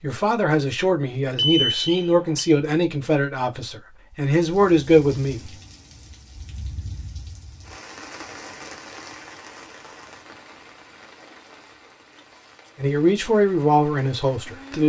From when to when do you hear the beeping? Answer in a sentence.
The beeping can be heard from 1.4 to 2.5 s.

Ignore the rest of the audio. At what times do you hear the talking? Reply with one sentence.
You can hear the talking from 0.0 to 5.4 s and from 12.8 to 14.8 s.